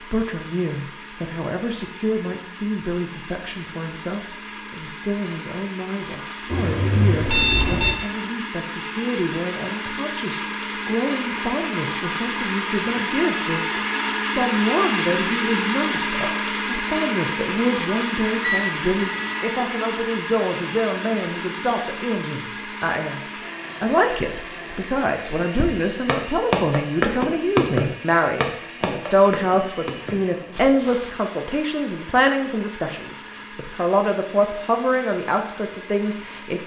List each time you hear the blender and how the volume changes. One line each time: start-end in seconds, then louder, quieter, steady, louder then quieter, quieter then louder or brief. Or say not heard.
0.0-36.6 louder then quieter.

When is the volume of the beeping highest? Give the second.
7 s.